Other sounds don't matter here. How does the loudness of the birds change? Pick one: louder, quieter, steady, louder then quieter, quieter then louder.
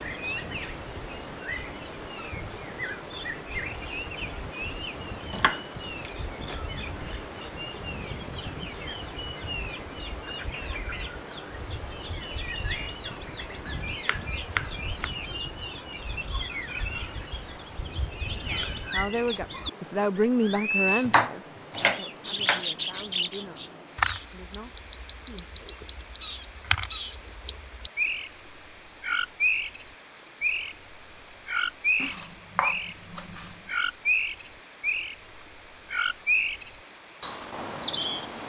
louder.